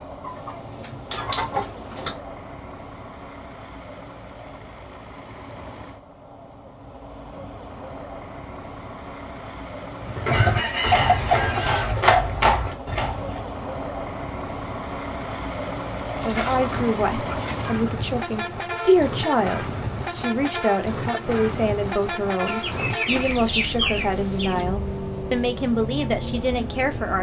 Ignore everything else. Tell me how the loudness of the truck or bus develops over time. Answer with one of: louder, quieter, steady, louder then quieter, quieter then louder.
louder.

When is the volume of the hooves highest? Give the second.
12 s.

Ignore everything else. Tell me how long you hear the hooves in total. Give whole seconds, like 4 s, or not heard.
3 s.